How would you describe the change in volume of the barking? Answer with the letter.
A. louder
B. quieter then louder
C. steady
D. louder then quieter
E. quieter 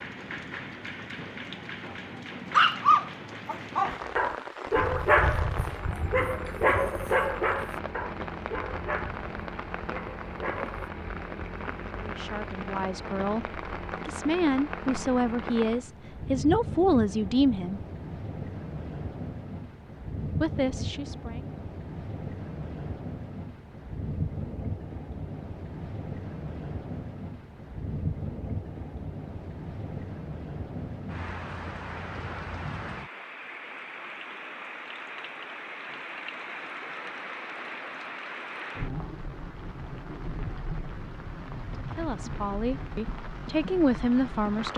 E.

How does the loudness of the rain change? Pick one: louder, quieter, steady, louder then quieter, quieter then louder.
steady.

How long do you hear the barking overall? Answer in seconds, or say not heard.
8 s.